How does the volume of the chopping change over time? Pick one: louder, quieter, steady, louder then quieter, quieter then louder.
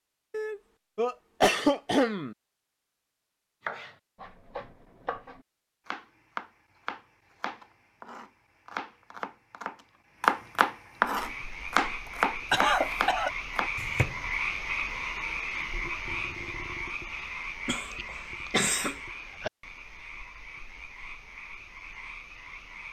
louder then quieter.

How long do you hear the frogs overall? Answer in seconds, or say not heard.
12 s.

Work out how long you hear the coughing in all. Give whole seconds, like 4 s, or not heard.
4 s.